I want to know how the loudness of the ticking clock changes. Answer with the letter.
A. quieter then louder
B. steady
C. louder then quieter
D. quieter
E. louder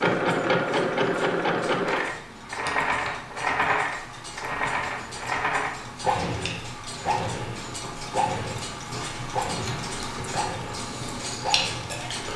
E.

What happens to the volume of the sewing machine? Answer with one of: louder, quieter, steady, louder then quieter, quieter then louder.
quieter.